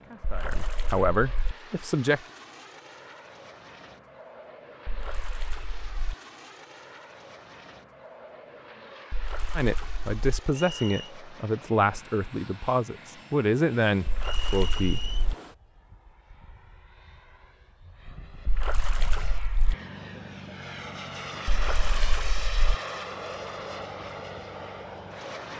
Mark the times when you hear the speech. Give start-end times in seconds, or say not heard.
0.0-2.2, 9.6-15.2.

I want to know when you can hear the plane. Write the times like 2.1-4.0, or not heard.
0.0-25.5.